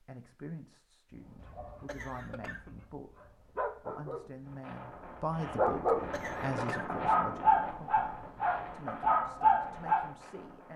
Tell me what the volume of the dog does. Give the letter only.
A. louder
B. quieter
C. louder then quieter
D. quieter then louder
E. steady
A.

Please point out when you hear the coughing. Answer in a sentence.
You can hear the coughing from 1.9 to 2.8 s and from 6.1 to 7.0 s.